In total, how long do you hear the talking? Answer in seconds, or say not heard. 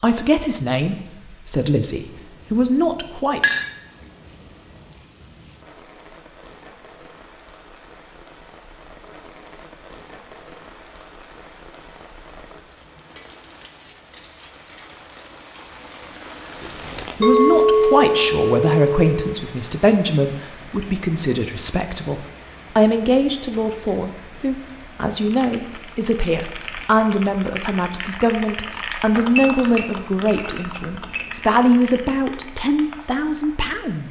21 s.